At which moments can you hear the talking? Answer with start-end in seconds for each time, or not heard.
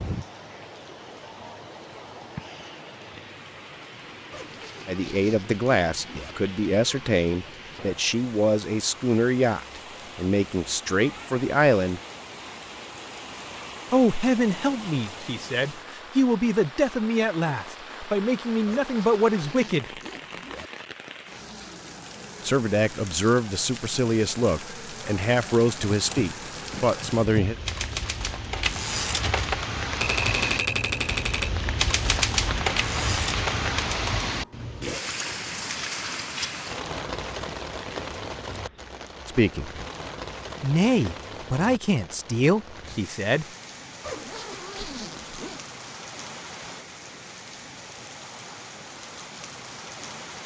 4.8-12.0, 13.9-19.9, 22.4-27.6, 39.2-39.8, 40.6-43.5.